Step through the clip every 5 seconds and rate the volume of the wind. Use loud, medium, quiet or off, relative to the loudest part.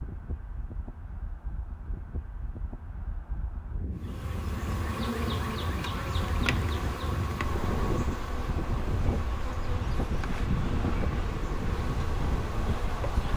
medium, loud, loud.